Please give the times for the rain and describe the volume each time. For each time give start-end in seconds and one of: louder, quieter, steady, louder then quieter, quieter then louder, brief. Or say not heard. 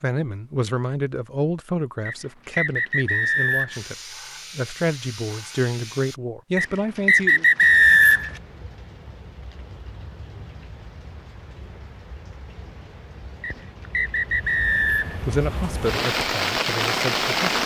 7.5-17.6 louder.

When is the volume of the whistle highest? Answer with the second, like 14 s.
8 s.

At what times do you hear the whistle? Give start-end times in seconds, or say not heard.
2.0-3.9, 6.5-8.3, 13.4-15.2.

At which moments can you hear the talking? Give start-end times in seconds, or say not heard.
0.0-4.0, 4.5-7.5, 15.2-17.5.